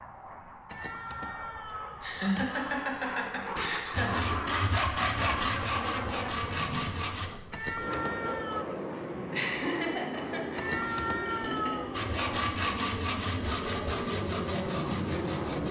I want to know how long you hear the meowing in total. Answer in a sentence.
The meowing can be heard for 5 seconds in total.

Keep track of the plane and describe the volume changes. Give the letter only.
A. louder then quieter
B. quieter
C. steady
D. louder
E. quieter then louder
D.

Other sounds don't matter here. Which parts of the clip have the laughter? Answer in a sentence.
You can hear the laughter from 2.0 to 4.3 s and from 9.3 to 11.9 s.